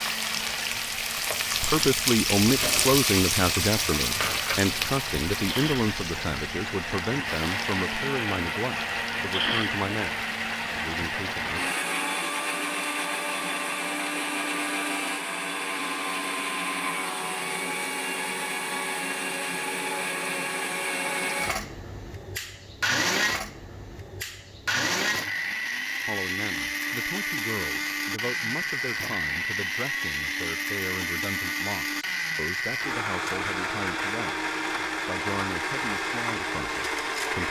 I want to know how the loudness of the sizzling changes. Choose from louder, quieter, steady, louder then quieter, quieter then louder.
quieter.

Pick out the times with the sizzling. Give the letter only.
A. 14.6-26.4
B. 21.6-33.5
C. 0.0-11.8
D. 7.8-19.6
C.